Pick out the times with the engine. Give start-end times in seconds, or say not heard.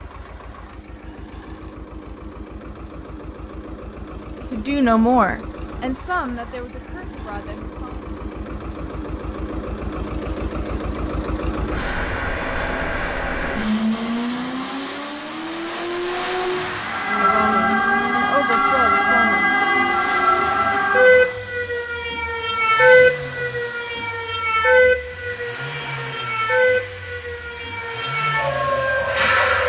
0.0-29.6.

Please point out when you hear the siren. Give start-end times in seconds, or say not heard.
16.8-29.6.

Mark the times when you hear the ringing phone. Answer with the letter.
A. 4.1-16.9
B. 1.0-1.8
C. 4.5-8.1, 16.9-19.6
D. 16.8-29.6
B.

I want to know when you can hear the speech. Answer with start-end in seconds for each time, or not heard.
4.5-8.1, 16.9-19.6.